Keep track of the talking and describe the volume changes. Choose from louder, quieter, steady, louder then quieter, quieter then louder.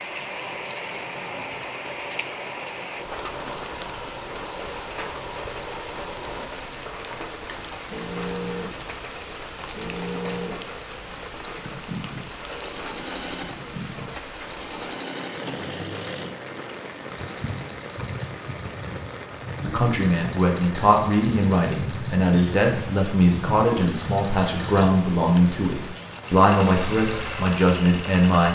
steady.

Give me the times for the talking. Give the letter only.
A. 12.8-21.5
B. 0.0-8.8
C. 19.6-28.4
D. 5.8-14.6
C.